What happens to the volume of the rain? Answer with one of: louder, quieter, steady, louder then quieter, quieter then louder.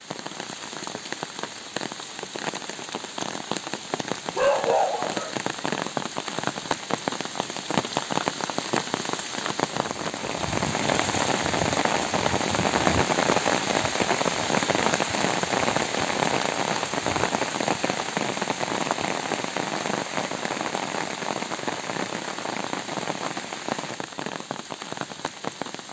louder then quieter.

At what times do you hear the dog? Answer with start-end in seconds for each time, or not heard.
4.3-5.3.